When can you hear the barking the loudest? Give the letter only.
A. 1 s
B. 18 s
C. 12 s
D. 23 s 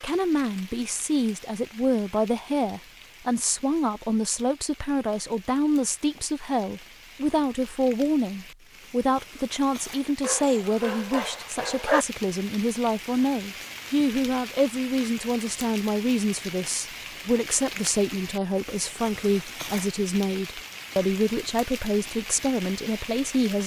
C.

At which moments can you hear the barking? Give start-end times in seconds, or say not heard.
10.2-12.1.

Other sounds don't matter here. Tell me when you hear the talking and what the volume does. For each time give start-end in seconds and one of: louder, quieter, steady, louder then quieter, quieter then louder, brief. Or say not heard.
0.0-23.6 steady.